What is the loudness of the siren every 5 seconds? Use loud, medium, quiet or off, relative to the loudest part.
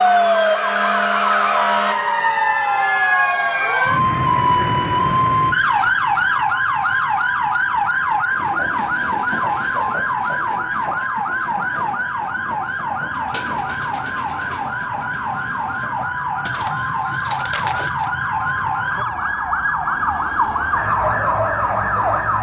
loud, loud, medium, medium, loud.